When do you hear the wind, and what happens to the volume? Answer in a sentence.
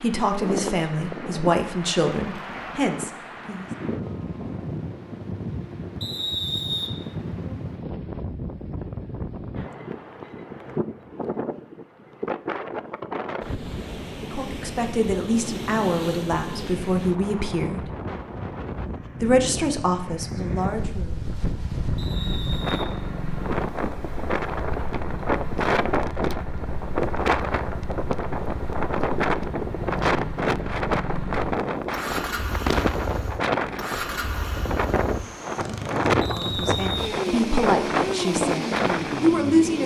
The wind can be heard from 0.0 to 39.8 s, getting louder.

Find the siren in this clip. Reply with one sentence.
You can't hear the siren here.